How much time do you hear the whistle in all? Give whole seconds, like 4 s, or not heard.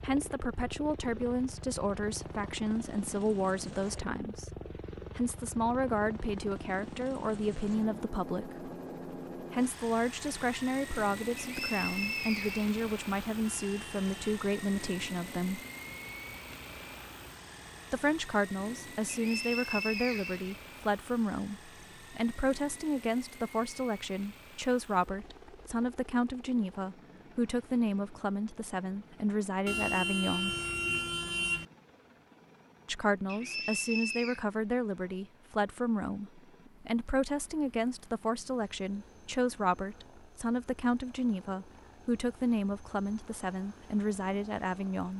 4 s.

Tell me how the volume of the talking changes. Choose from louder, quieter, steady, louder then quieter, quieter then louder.
steady.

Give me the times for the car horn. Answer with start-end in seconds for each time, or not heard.
13.4-14.3, 29.6-31.6.